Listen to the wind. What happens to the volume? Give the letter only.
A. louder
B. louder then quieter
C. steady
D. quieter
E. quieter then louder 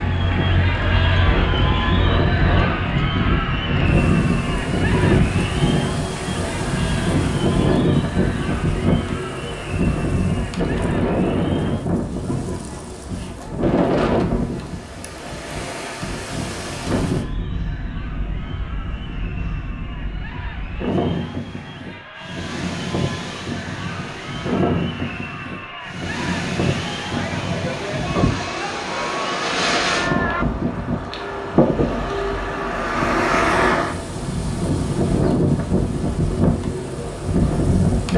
E.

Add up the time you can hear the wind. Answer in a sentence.
The wind can be heard for 38 seconds in total.